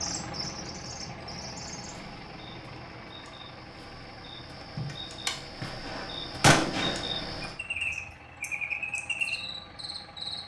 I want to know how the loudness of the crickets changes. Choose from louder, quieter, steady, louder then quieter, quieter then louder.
quieter then louder.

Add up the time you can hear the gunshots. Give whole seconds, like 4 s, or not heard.
3 s.